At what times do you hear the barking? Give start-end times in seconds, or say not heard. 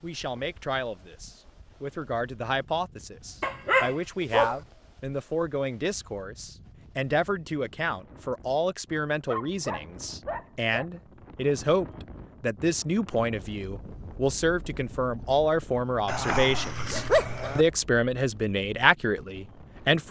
3.4-4.5, 9.2-10.8, 16.1-17.6.